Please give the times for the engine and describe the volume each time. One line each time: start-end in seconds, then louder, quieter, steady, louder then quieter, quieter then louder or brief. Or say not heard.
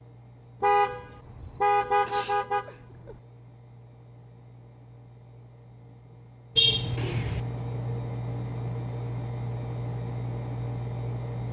0.0-11.4 louder.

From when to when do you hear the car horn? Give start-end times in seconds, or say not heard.
0.6-3.1, 6.5-7.4.